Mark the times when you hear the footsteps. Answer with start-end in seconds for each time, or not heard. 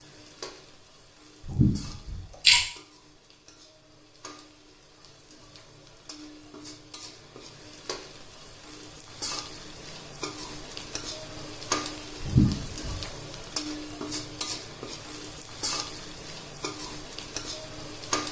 not heard.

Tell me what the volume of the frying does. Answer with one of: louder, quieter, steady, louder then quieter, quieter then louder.
louder.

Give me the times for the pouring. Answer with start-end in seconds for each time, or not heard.
1.4-2.6, 12.2-13.0.